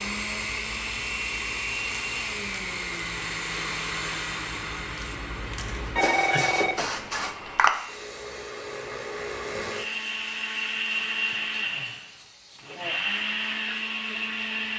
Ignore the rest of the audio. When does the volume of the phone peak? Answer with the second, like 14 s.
6 s.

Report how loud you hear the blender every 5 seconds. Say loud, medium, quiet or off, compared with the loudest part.
loud, medium, loud.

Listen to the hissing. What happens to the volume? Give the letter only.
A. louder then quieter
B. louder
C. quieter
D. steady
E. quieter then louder
A.